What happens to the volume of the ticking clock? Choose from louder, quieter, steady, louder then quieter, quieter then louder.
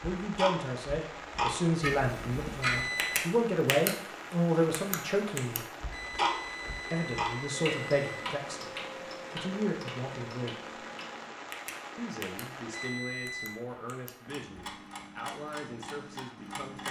quieter.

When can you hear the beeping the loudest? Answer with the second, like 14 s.
3 s.